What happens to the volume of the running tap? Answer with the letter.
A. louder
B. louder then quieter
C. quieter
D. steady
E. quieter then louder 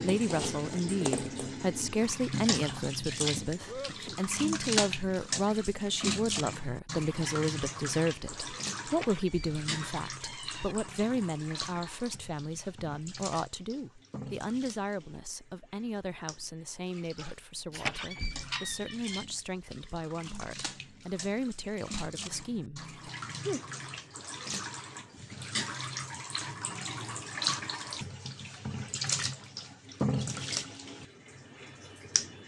E.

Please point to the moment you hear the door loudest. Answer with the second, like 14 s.
18 s.